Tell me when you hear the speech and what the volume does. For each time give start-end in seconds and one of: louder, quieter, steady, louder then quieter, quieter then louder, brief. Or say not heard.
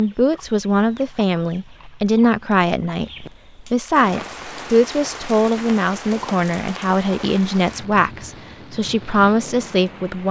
0.0-10.2 steady.